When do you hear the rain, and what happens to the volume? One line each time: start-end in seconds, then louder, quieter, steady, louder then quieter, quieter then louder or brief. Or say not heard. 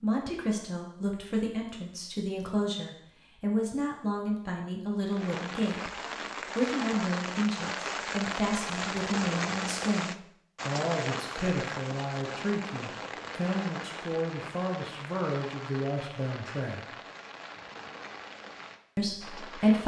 5.0-19.8 quieter.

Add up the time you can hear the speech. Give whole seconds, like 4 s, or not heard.
17 s.